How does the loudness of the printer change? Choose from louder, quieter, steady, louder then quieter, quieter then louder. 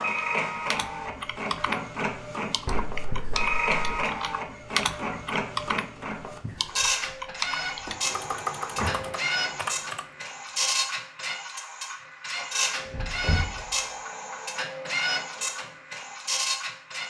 steady.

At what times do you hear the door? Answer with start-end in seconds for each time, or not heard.
2.6-4.0, 7.8-9.1, 12.8-13.9.